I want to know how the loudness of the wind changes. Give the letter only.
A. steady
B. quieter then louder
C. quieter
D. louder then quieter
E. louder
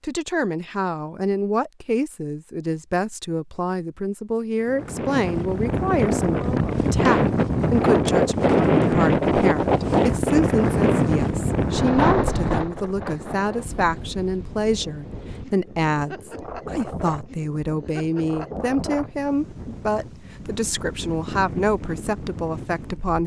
C.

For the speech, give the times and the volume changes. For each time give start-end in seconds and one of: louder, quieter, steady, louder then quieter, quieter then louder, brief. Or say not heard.
0.0-23.2 steady.